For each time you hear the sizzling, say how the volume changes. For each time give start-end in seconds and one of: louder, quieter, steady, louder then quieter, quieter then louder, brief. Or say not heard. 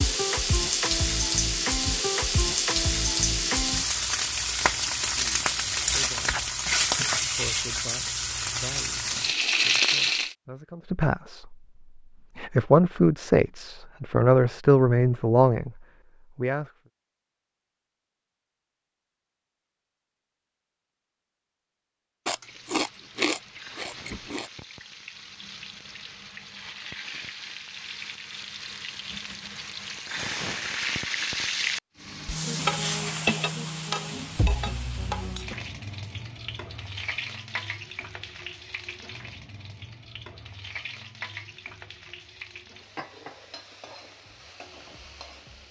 0.0-10.3 steady
22.2-45.6 louder then quieter.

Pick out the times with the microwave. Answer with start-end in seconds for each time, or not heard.
not heard.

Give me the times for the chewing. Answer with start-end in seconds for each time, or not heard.
22.2-24.5.